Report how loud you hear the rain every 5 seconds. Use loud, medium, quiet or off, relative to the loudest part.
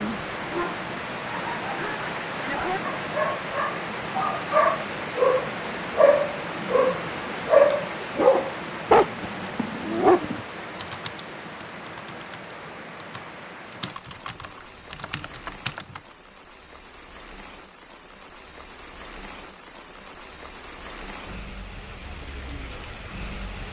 loud, loud, medium, quiet, medium.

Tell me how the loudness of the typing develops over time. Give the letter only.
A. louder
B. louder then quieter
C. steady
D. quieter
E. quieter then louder
A.